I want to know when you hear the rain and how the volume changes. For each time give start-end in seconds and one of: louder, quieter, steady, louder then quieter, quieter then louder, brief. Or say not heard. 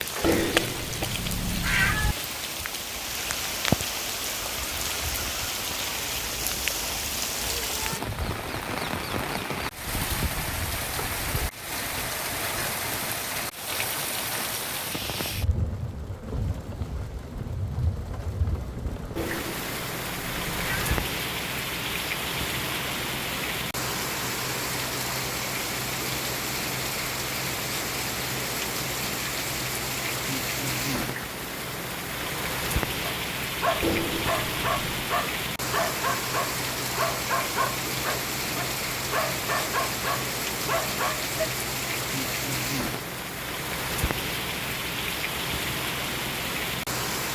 0.0-47.3 steady.